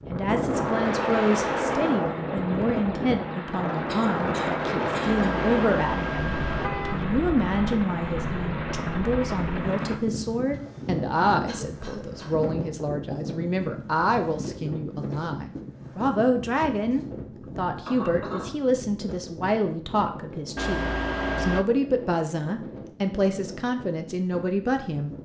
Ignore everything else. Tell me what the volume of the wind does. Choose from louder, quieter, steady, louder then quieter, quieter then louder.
quieter.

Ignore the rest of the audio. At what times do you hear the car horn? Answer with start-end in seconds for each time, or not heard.
5.0-7.0, 20.6-21.6.